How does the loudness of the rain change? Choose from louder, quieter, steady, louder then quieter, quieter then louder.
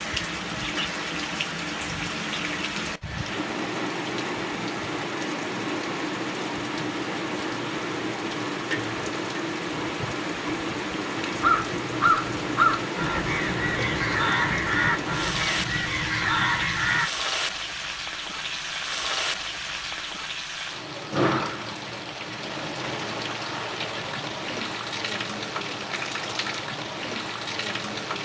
steady.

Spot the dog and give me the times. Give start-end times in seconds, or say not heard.
not heard.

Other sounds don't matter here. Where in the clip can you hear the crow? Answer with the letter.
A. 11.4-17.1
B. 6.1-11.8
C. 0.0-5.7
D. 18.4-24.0
A.